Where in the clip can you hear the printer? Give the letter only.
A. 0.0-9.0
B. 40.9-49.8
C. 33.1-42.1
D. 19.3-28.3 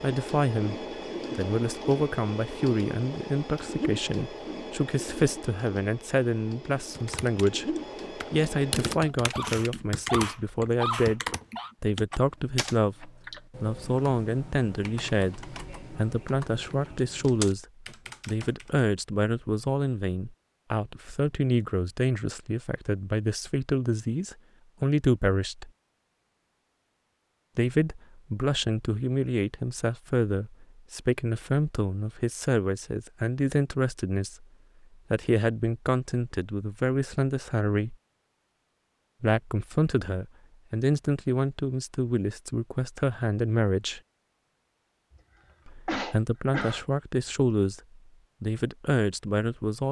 A.